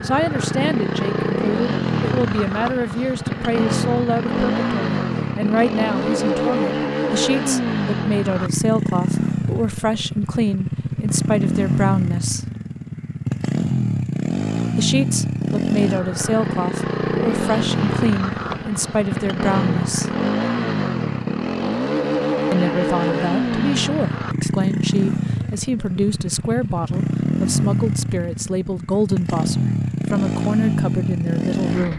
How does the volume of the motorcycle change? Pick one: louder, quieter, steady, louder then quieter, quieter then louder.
steady.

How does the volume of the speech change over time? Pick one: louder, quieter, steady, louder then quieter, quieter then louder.
steady.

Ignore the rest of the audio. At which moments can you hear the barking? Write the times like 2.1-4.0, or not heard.
not heard.